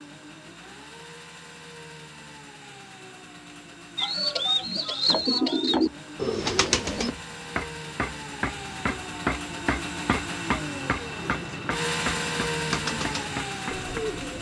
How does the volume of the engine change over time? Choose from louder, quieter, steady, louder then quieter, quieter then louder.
louder.